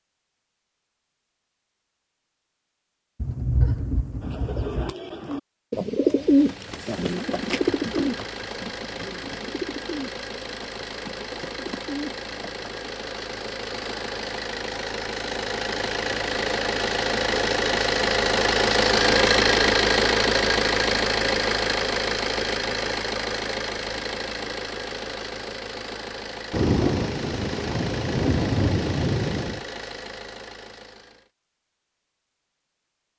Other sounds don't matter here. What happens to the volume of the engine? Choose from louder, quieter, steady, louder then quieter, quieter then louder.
louder then quieter.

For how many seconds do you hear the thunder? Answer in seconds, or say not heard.
5 s.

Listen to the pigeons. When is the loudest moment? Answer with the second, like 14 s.
6 s.